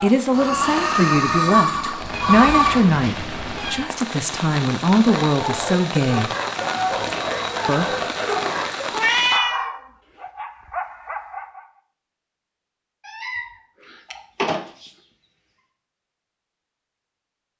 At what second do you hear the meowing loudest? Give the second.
9 s.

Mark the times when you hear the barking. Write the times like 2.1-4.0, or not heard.
5.0-11.7.